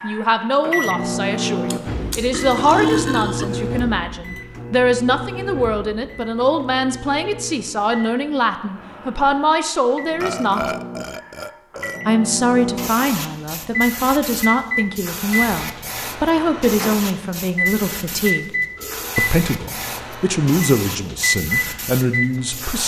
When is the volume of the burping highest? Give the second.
3 s.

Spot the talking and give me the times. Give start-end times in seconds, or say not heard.
0.0-10.7, 12.1-18.5, 19.1-22.8.